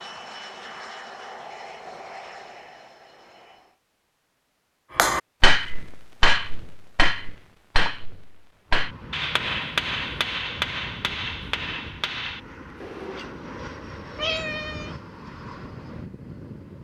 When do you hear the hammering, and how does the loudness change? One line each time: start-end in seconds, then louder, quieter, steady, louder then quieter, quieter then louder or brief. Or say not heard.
5.0-13.4 quieter.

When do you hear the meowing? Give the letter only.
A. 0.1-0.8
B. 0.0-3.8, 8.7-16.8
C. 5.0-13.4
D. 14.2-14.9
D.